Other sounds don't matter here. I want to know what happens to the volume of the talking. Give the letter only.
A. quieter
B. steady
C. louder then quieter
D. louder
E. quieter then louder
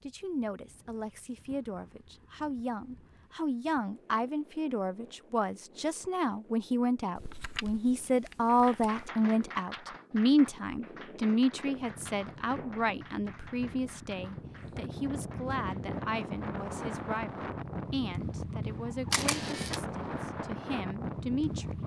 C.